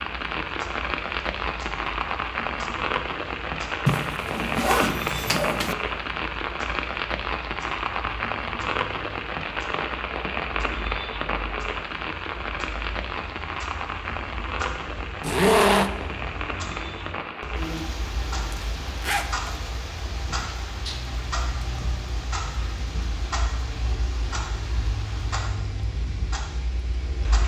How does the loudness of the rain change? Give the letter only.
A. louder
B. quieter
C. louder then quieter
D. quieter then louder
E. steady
B.